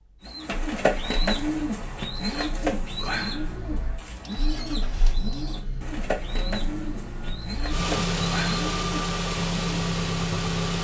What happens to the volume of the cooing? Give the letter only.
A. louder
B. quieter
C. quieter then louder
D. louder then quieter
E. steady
B.